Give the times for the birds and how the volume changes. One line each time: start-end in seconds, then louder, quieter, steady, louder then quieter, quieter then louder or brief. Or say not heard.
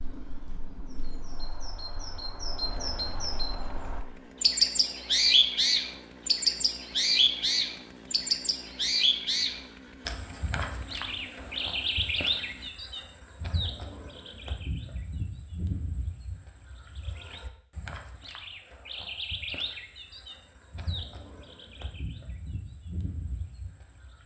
0.0-24.2 louder then quieter.